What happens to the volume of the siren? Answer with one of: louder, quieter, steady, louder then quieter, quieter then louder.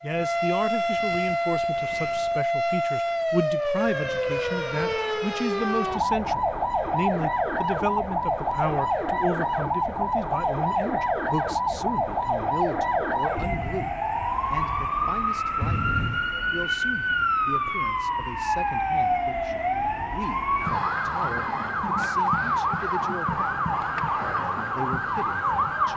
steady.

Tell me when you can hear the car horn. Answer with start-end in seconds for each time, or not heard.
15.6-16.2.